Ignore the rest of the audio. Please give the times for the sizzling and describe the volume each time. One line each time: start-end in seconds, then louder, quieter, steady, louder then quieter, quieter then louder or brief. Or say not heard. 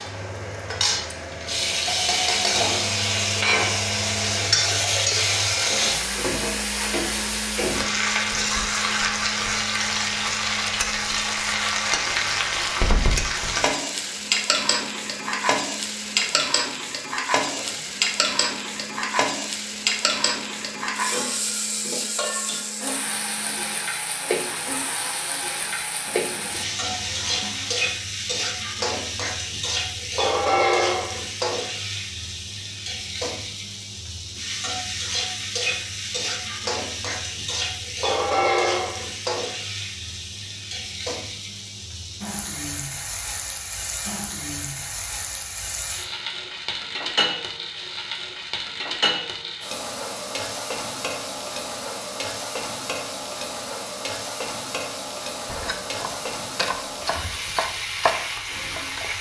0.0-59.1 quieter.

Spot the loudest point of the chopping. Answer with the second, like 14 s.
58 s.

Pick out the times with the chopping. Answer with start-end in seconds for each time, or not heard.
55.5-59.1.